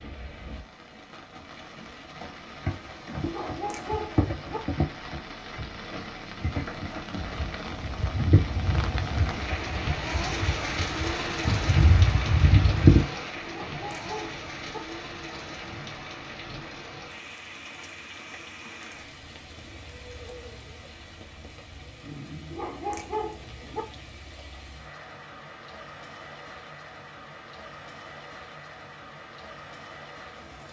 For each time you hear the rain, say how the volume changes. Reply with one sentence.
The rain can be heard from 0.0 to 30.6 s, getting louder then quieter.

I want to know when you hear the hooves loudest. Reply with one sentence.
The loudest moment of the hooves is at 13 seconds.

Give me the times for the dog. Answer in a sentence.
You can hear the dog from 3.2 to 4.6 s, from 13.4 to 14.8 s and from 22.5 to 23.9 s.